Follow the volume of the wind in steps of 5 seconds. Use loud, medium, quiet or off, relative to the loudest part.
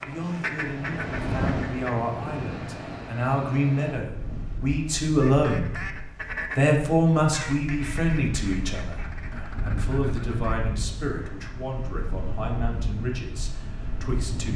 loud, medium, loud.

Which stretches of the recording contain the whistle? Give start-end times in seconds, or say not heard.
not heard.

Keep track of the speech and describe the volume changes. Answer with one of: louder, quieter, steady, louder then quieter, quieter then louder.
louder then quieter.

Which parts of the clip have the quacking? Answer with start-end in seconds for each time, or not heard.
0.0-1.9, 5.2-10.6.